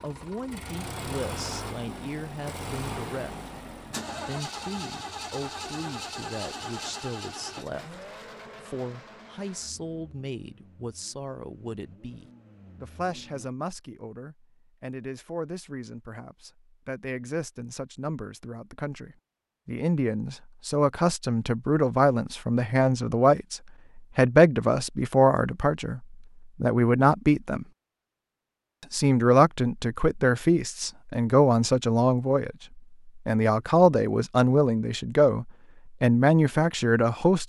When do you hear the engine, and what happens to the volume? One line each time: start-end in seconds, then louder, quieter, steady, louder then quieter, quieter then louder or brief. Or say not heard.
0.0-13.5 quieter.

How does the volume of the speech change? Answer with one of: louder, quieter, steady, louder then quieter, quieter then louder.
louder.